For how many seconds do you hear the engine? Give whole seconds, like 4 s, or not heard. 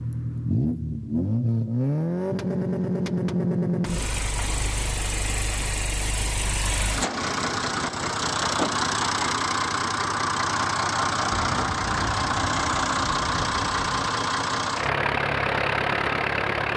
17 s.